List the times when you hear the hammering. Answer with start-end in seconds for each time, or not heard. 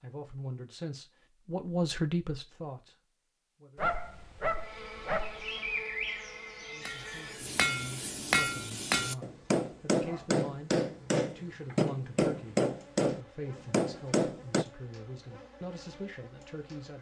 6.8-14.7.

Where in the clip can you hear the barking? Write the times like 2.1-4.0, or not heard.
3.8-5.5.